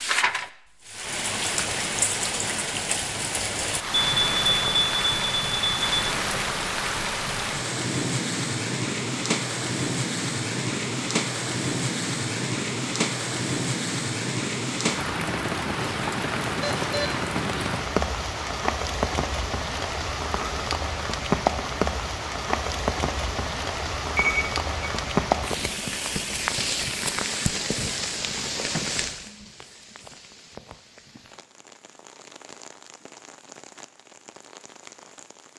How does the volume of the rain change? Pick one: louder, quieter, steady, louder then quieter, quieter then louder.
quieter.